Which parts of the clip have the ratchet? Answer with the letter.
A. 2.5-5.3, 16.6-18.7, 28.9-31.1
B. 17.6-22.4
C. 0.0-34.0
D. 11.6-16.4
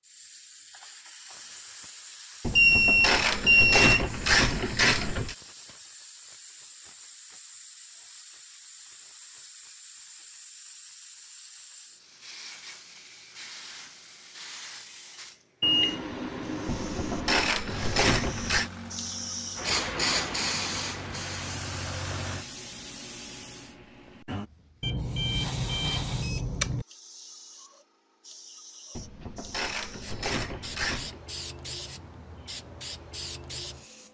A.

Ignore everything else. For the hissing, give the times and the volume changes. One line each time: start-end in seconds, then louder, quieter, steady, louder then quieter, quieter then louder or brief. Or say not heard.
0.0-34.0 louder then quieter.